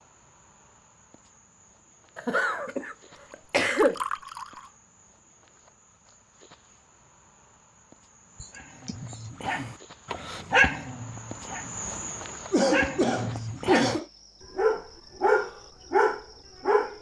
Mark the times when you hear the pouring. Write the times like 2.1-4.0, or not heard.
3.3-4.7.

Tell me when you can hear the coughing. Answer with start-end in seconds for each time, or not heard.
2.1-4.0, 8.4-9.3, 12.5-14.1.